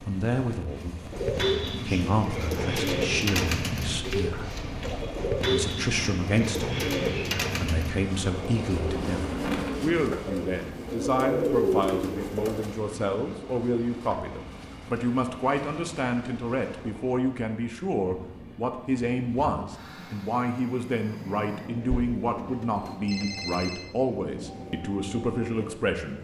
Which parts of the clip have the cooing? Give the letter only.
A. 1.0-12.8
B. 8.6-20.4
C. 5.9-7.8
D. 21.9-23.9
A.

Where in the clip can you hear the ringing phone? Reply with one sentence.
The ringing phone can be heard from 21.9 to 23.9 s.